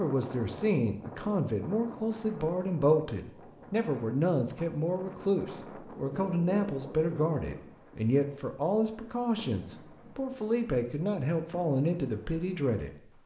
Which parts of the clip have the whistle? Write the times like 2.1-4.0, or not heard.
not heard.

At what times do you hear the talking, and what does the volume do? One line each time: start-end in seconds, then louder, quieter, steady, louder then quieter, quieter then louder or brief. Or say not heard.
0.0-12.9 steady.